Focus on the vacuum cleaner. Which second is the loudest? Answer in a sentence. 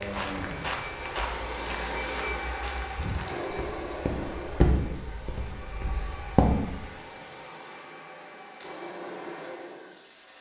The volume of the vacuum cleaner peaks at 2 seconds.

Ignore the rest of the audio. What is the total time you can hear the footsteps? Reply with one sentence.
You can hear the footsteps for 7 seconds altogether.